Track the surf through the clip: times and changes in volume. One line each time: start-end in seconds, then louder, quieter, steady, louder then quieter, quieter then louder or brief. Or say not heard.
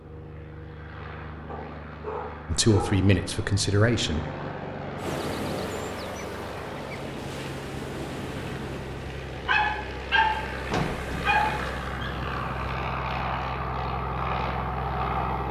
5.0-15.4 quieter.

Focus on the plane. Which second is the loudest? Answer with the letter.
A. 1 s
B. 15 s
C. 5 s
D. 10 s
B.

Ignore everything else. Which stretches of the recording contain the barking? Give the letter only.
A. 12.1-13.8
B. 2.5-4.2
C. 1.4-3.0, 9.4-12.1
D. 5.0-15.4
C.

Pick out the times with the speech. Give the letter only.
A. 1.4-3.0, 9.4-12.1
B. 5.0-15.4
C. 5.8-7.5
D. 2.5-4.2
D.